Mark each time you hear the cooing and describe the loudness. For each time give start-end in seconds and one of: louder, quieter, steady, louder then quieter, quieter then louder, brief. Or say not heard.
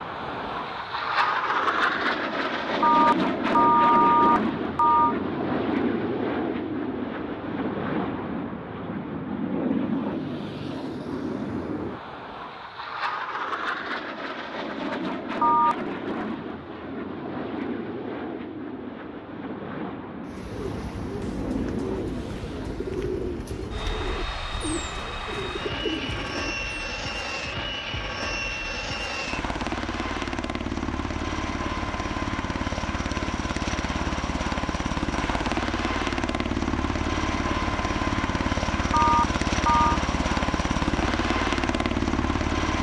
20.2-26.6 steady.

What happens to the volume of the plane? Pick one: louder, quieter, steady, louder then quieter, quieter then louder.
quieter then louder.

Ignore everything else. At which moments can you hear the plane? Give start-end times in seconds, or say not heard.
0.0-42.7.